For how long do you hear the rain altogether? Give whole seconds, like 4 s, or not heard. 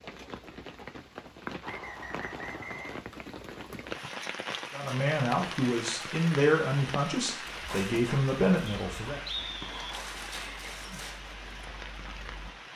13 s.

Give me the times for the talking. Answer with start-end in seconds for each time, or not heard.
4.7-9.2.